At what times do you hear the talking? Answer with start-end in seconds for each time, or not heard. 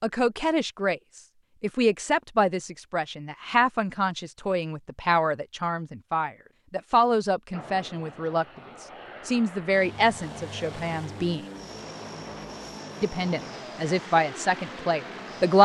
0.0-11.4, 13.0-15.6.